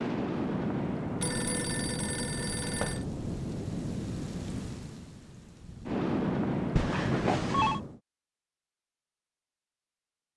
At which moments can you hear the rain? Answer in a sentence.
The rain can be heard from 0.0 to 8.0 s.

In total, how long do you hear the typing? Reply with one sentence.
The typing can't be heard in this clip.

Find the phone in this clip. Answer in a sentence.
The phone can be heard from 1.2 to 3.0 s and from 6.8 to 7.8 s.